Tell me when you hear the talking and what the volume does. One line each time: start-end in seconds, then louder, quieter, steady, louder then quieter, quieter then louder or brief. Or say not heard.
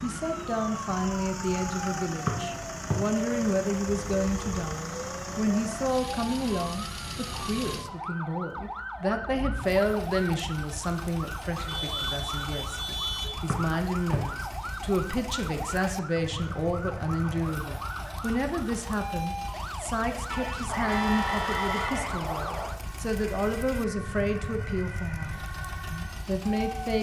0.0-26.9 steady.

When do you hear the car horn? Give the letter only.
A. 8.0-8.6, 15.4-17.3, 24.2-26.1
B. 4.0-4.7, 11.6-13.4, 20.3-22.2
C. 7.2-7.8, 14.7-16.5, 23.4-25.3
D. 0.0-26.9
B.